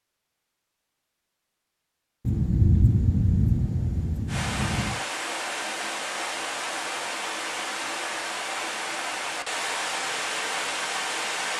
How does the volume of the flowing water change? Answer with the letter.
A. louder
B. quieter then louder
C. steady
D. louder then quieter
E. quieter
C.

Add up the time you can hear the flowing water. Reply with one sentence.
The flowing water can be heard for 7 seconds in total.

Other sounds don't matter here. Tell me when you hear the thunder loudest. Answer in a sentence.
The loudest moment of the thunder is at 3 seconds.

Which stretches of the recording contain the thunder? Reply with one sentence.
The thunder can be heard from 2.2 to 5.0 s.